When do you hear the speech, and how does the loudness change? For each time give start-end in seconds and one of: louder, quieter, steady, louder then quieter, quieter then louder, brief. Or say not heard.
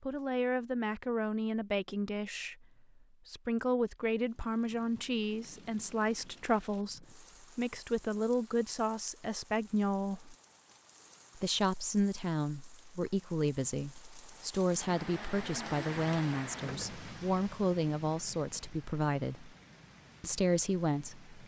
0.0-2.6 brief
3.2-10.3 steady
11.3-19.5 steady
20.2-21.4 brief.